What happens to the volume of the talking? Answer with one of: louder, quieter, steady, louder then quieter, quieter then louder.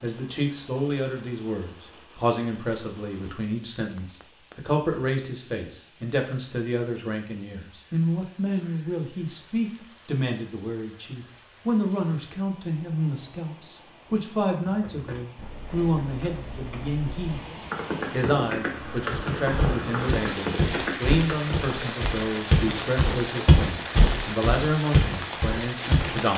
steady.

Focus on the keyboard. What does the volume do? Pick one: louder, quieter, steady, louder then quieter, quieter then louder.
louder.